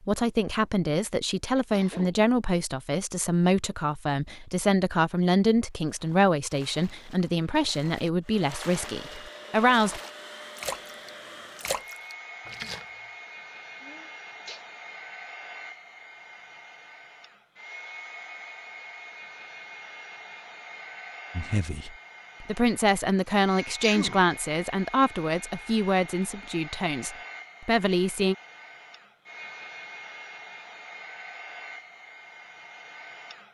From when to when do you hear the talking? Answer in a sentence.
You can hear the talking from 0.0 to 10.0 s and from 21.4 to 28.4 s.